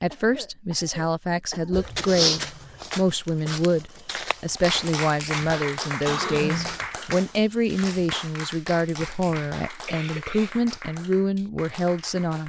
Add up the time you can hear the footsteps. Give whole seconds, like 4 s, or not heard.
6 s.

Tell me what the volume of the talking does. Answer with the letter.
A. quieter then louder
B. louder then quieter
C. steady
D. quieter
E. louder
C.